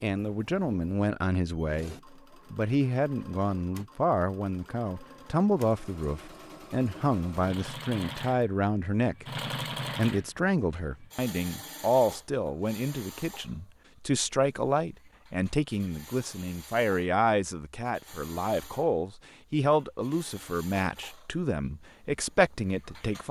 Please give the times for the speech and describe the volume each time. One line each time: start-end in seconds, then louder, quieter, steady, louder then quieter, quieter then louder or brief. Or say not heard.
0.0-9.2 steady
9.9-23.2 steady.